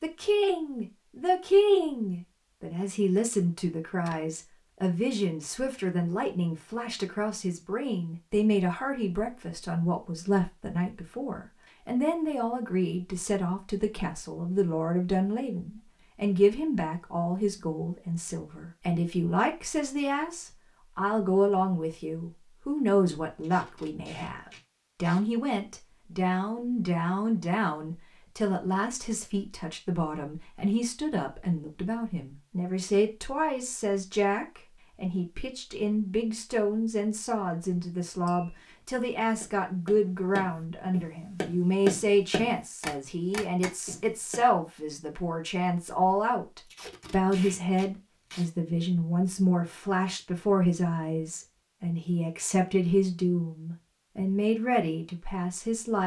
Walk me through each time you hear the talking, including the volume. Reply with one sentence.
The talking can be heard from 0.0 to 56.0 s, at a steady volume.